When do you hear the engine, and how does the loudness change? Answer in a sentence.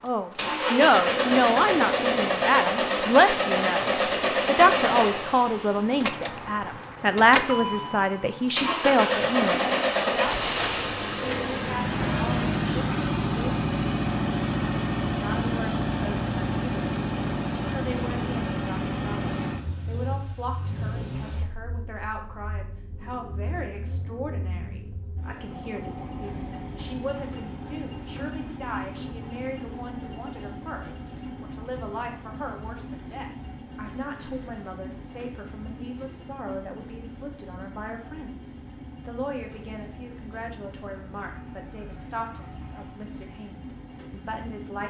You can hear the engine from 0.0 to 44.8 s, getting quieter.